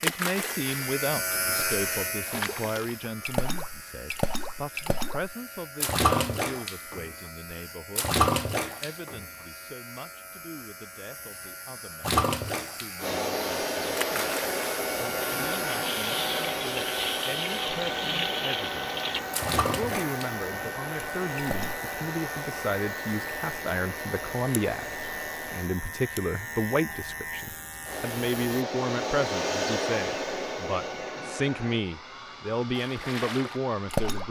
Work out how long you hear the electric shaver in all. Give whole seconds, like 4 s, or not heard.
29 s.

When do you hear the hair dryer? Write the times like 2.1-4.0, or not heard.
12.9-25.7, 27.8-34.2.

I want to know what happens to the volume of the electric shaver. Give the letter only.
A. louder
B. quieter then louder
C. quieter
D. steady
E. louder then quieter
B.